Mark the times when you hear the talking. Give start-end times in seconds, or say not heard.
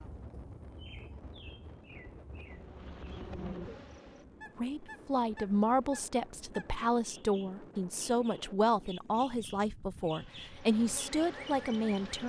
4.5-12.2.